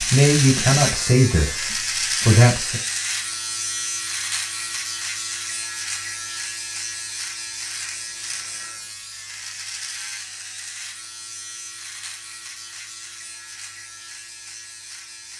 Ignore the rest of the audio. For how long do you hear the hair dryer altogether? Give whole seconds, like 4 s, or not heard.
not heard.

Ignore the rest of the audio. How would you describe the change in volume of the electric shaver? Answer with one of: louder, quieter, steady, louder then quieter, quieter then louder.
quieter.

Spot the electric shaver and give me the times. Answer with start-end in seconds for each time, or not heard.
0.0-15.3.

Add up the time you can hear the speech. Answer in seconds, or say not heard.
3 s.